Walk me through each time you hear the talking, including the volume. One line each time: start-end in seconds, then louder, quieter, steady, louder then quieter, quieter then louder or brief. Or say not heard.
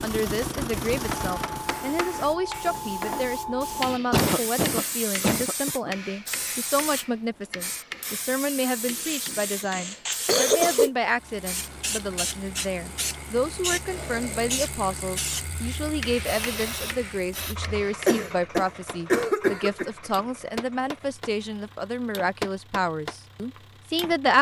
0.0-24.3 steady.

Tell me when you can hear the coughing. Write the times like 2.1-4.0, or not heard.
4.1-6.0, 9.1-10.9, 18.1-19.9.